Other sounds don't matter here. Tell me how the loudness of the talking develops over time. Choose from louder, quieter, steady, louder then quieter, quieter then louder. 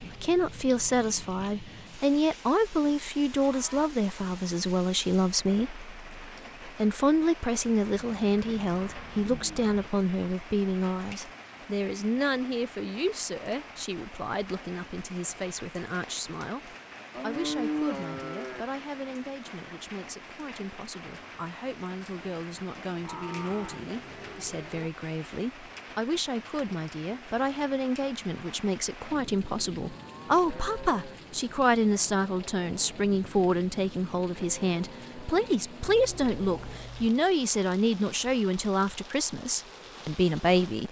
quieter then louder.